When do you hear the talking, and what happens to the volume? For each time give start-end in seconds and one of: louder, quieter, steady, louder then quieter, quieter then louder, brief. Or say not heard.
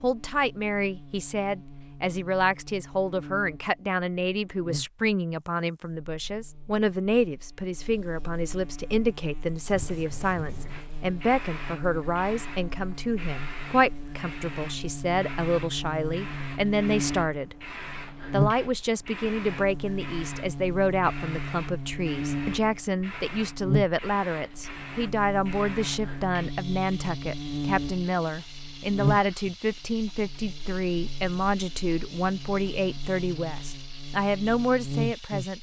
0.0-17.6 steady
18.3-35.5 steady.